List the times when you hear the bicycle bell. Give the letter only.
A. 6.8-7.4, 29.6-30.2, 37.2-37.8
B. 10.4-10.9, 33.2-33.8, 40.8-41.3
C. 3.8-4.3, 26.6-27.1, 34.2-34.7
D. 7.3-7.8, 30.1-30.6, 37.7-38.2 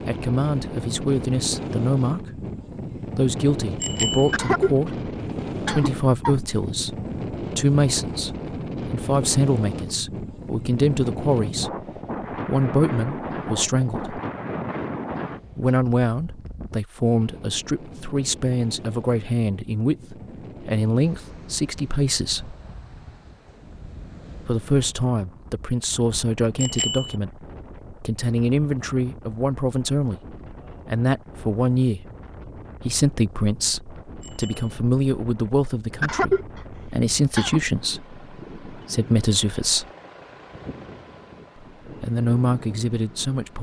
C.